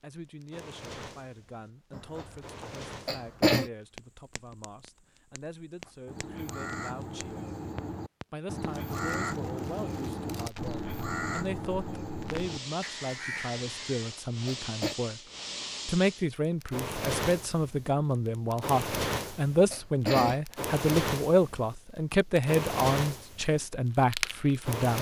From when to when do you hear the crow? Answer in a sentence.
You can hear the crow from 5.8 to 14.1 s.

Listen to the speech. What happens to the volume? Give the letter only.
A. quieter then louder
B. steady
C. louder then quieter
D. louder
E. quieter
D.